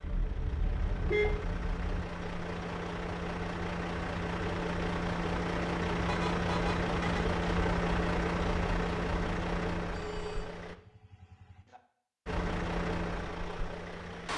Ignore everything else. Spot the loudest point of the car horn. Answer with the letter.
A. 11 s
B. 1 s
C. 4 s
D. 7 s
B.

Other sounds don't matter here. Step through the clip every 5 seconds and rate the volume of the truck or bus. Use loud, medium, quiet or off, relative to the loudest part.
medium, loud, medium.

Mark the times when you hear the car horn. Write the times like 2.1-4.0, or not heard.
0.0-2.0, 6.0-7.3, 9.9-11.8.